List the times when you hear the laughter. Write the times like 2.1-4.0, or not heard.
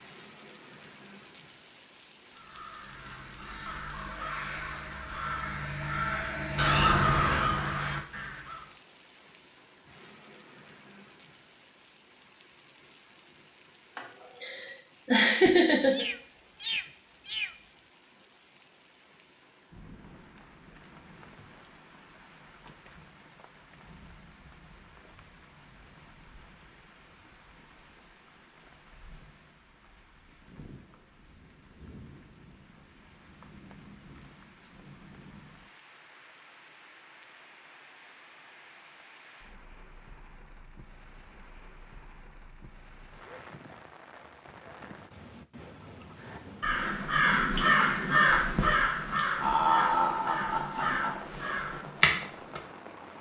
13.9-16.1, 49.4-51.2.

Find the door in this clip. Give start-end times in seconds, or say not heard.
not heard.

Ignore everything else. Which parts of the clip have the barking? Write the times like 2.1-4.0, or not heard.
not heard.